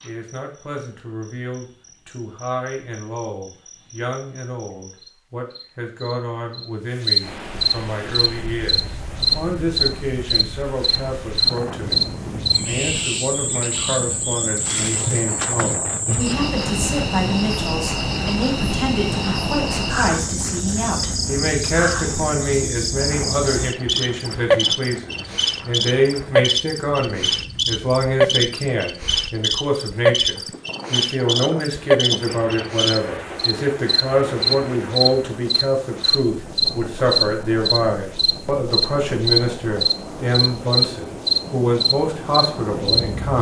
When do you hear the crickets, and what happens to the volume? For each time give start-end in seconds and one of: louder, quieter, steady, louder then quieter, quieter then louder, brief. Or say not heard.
0.0-43.3 louder.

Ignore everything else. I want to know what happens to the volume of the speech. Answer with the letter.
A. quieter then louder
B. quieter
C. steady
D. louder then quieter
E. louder
E.